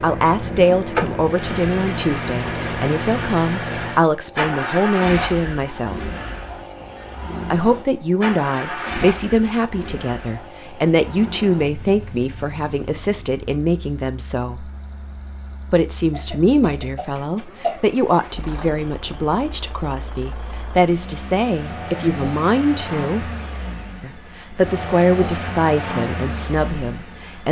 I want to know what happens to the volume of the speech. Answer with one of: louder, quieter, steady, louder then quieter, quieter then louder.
steady.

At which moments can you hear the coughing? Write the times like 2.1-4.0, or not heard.
16.1-17.8.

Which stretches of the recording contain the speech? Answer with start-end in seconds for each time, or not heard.
0.0-6.0, 7.5-14.7, 15.7-23.3, 24.0-27.4.